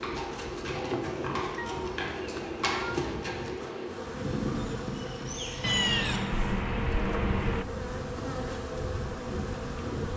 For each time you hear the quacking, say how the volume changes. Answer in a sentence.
You can't hear the quacking here.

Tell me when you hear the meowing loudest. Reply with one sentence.
The loudest moment of the meowing is at 6 seconds.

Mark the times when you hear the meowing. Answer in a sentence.
The meowing can be heard from 1.6 to 3.6 s and from 5.6 to 7.7 s.